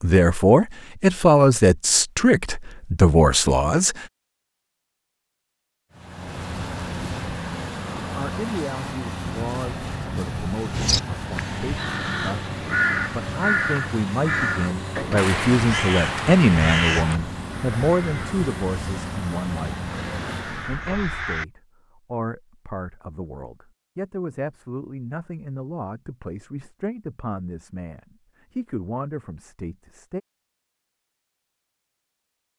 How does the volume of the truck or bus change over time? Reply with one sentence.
The loudness of the truck or bus stays about the same.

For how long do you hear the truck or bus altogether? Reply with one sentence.
The truck or bus can be heard for 15 seconds in total.